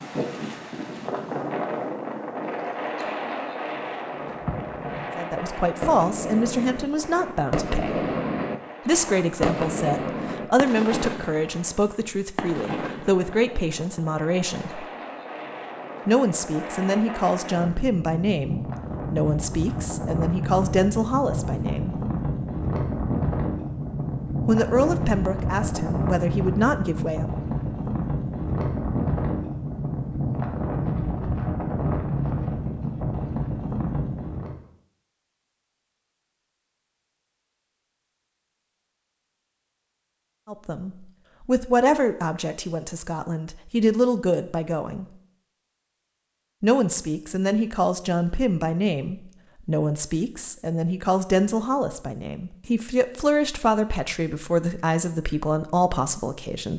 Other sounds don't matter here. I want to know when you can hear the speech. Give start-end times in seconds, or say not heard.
5.2-8.1, 8.8-14.8, 16.1-22.0, 24.4-27.3, 40.5-45.0, 46.6-56.7.